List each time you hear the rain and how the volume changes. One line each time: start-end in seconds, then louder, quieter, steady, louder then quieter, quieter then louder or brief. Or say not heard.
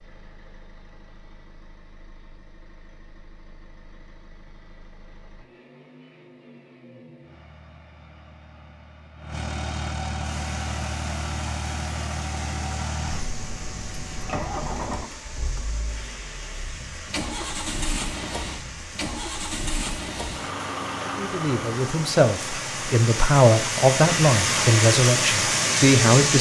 10.2-26.3 louder.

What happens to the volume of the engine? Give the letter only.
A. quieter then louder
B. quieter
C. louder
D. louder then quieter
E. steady
C.